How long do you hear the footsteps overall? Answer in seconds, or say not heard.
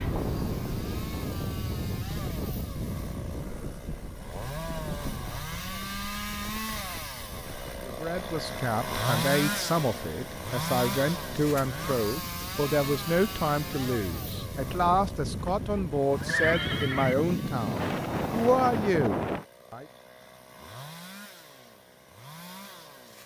not heard.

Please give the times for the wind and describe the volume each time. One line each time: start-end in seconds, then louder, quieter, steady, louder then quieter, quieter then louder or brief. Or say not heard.
0.0-19.4 quieter then louder.